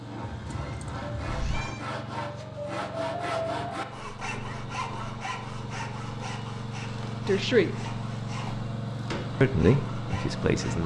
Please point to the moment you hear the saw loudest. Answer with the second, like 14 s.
3 s.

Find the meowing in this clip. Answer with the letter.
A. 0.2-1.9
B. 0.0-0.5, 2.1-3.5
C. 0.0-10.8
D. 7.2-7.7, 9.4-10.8
A.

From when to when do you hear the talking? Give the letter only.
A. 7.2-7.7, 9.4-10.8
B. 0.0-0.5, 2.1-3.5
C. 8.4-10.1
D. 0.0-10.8
A.